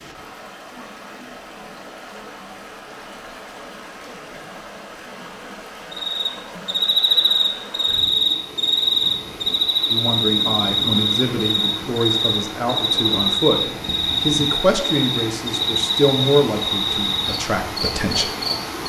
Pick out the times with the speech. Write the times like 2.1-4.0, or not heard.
9.9-18.3.